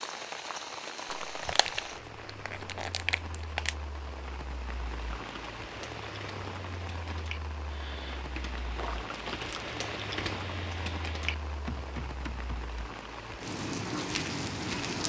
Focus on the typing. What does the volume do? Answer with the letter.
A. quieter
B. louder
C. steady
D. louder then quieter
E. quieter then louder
B.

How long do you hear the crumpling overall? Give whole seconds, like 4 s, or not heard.
4 s.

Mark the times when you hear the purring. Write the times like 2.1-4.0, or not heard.
not heard.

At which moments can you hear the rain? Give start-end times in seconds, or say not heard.
0.0-15.0.